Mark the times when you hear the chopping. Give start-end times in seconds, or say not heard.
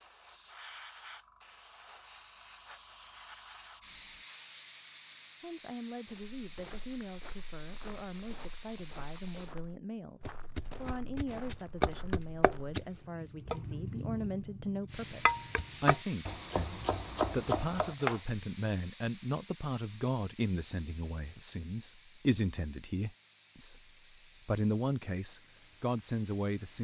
10.2-18.2.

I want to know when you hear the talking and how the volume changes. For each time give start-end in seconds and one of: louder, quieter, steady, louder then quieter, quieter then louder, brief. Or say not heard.
5.4-23.8 louder
24.4-26.7 brief.